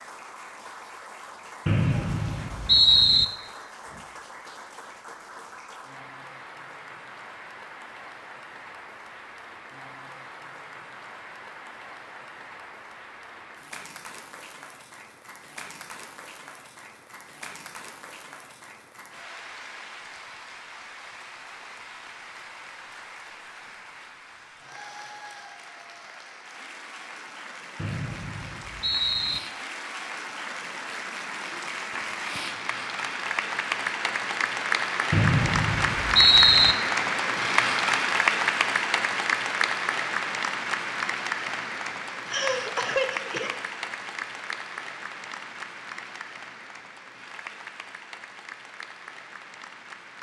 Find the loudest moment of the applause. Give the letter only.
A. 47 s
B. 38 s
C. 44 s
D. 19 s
B.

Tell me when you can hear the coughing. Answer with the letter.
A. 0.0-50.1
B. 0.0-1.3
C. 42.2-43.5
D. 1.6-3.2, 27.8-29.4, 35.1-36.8
C.